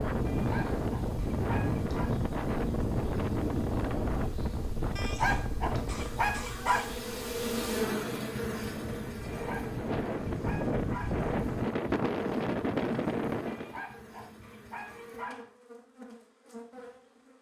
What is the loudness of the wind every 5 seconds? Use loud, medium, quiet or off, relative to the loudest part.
loud, medium, loud, off.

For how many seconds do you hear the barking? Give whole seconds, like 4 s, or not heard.
8 s.